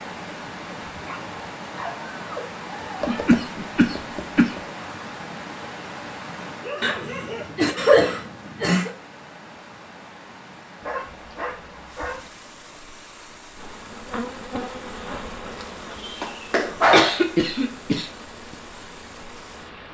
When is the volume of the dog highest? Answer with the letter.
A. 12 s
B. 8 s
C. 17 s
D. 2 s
C.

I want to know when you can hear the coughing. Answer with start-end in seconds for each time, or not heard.
3.0-4.6, 6.8-8.9, 16.9-18.1.